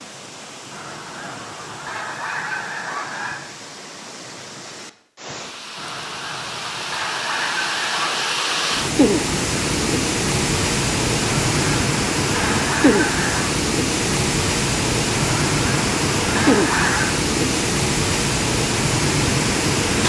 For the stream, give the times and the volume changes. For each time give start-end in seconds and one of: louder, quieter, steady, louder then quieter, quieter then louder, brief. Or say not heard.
0.0-20.0 louder.